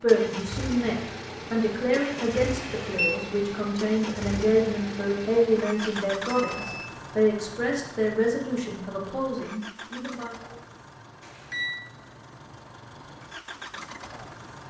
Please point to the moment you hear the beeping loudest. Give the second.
3 s.